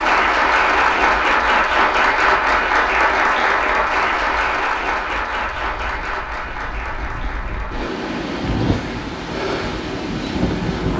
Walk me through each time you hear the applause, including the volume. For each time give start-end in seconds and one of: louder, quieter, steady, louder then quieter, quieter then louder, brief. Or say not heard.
0.0-10.9 quieter.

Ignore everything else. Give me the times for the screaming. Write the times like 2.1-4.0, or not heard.
not heard.